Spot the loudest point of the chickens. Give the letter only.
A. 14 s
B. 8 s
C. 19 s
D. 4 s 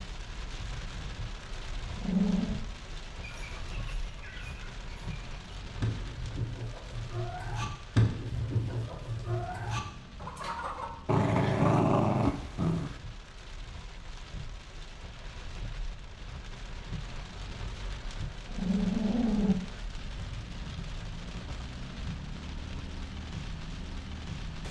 B.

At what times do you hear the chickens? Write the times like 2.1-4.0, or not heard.
3.2-10.9.